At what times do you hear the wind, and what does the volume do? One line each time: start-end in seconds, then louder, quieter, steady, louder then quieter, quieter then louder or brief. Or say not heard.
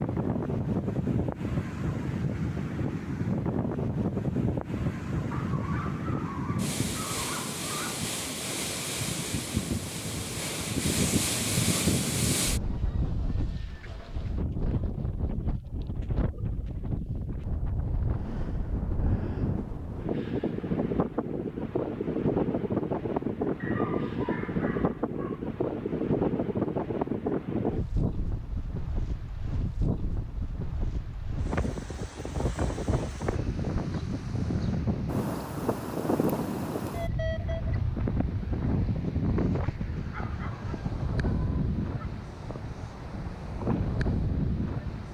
0.0-45.0 steady.